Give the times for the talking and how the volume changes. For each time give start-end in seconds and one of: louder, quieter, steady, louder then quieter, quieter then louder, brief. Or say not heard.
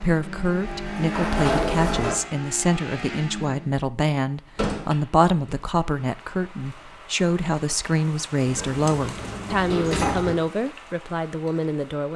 0.0-12.1 steady.